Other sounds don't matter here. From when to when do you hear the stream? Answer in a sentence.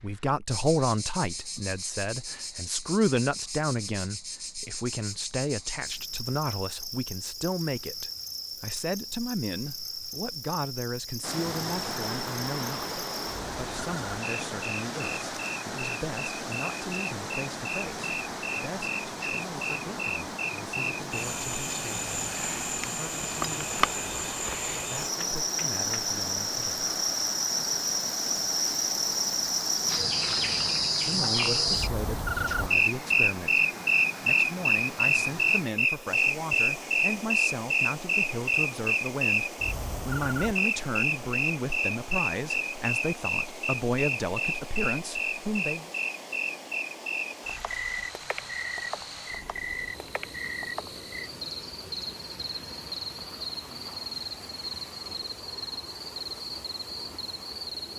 The stream can be heard from 11.2 to 57.9 s.